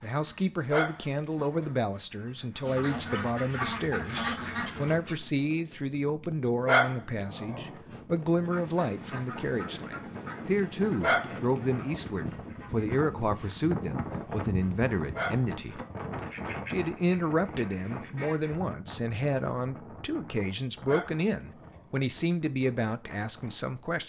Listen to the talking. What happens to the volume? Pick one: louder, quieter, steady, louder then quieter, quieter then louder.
steady.